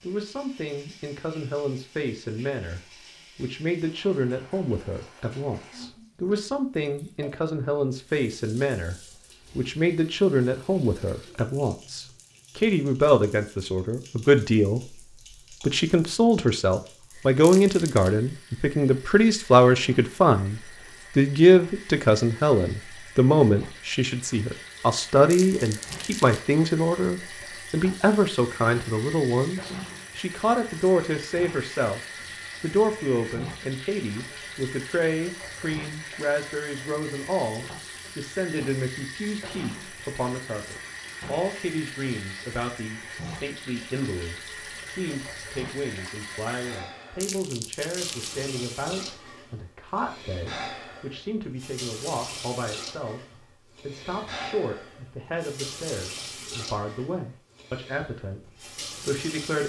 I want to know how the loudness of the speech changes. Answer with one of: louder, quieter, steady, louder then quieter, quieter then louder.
louder then quieter.